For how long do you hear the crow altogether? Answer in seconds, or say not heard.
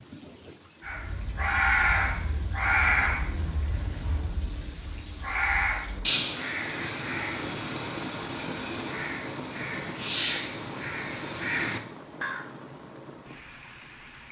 12 s.